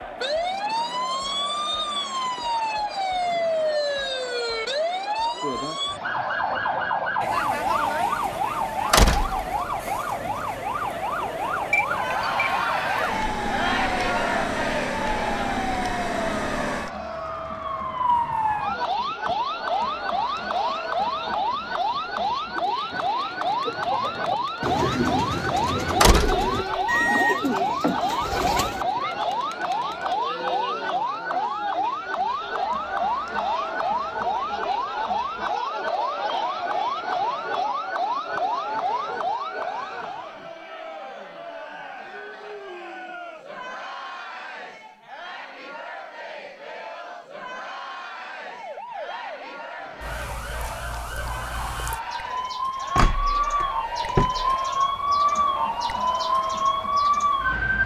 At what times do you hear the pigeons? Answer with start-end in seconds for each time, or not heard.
23.6-28.9.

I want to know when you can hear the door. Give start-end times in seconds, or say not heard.
8.9-9.9, 26.0-27.0, 53.0-54.5.